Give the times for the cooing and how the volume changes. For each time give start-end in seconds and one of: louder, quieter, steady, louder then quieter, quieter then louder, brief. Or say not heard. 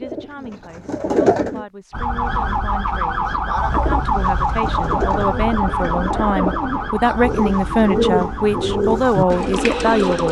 0.0-1.6 brief
3.2-10.2 louder.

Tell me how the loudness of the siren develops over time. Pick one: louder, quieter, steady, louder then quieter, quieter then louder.
quieter.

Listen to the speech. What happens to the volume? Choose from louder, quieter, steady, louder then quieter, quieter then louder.
louder.